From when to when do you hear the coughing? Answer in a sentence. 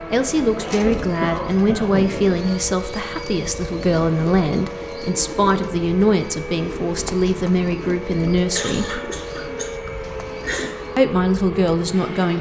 You can hear the coughing from 0.6 to 2.1 s and from 8.2 to 10.8 s.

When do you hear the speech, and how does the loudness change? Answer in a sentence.
You can hear the speech from 0.1 to 9.0 s, at a steady volume; and briefly from 10.9 to 12.3 s.